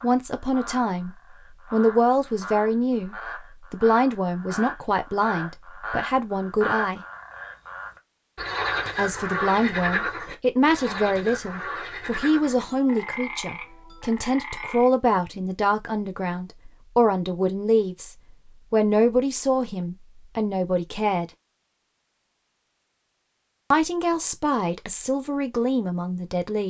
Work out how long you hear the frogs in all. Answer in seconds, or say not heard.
15 s.